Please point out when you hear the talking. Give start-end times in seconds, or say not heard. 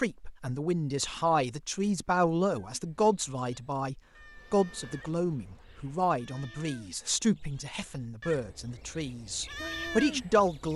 0.0-10.7.